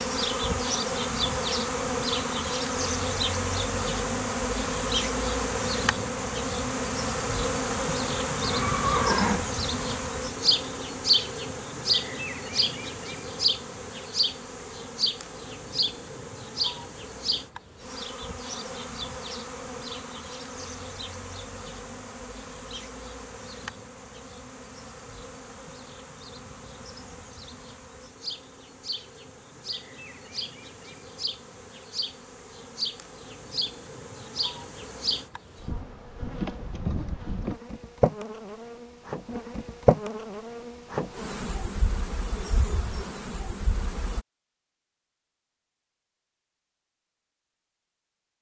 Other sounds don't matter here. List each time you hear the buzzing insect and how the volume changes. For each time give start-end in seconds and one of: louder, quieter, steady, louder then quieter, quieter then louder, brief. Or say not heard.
0.0-44.2 quieter then louder.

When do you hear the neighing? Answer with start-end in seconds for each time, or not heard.
8.4-9.4.